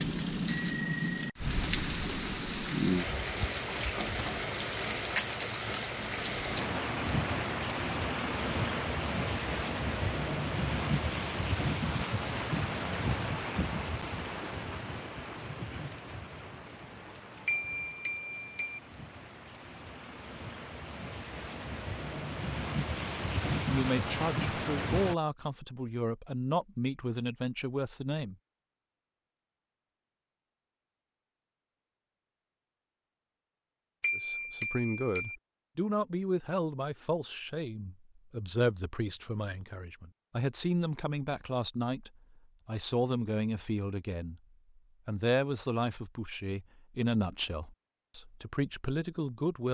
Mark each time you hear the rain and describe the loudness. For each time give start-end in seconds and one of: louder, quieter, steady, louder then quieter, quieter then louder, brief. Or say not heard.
0.0-25.1 quieter then louder.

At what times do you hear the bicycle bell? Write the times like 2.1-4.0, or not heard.
0.5-1.3, 17.4-18.8, 34.0-35.4.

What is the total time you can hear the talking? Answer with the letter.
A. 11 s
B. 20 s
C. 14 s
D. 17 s
B.